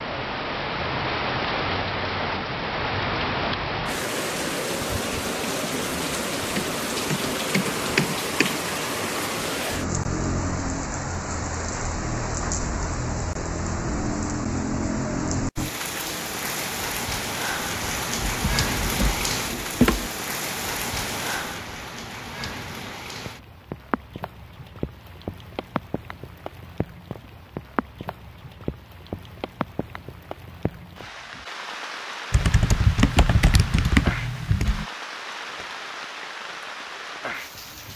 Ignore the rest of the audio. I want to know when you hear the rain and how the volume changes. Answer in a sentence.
You can hear the rain from 0.0 to 37.9 s, getting quieter.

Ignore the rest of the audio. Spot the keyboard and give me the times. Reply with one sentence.
You can hear the keyboard from 6.5 to 8.6 s, from 18.2 to 20.1 s and from 32.3 to 34.9 s.